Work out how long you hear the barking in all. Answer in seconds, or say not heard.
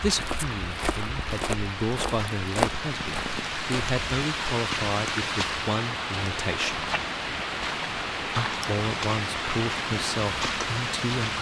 not heard.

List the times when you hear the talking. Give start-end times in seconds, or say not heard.
0.0-6.8, 8.3-11.3.